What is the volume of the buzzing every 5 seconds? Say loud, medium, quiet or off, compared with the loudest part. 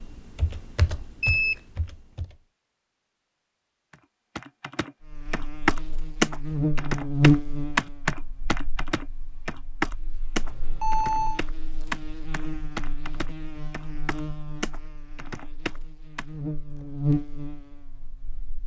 off, loud, quiet, medium.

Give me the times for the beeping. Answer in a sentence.
You can hear the beeping from 1.2 to 1.6 s and from 10.3 to 11.4 s.